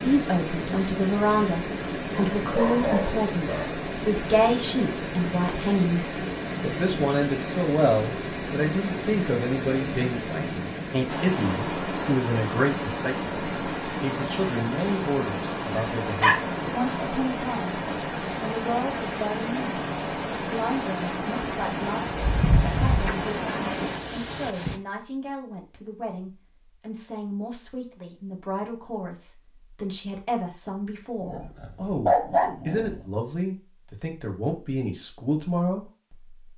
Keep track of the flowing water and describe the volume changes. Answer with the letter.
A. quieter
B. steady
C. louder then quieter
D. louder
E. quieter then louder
B.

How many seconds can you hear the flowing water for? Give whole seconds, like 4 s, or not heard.
25 s.